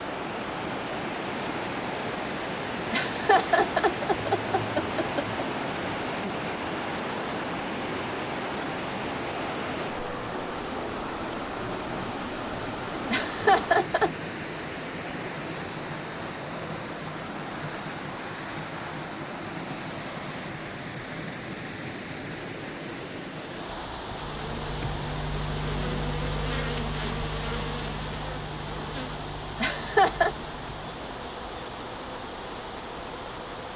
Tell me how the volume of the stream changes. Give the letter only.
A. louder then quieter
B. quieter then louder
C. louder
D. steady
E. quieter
E.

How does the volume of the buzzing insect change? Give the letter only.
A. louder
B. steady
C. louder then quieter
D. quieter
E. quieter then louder
D.